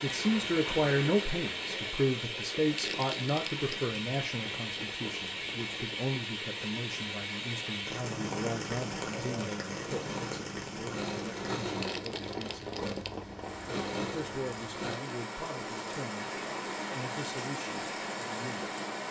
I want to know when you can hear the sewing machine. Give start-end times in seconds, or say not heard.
9.1-14.9.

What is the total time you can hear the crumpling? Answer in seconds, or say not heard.
2 s.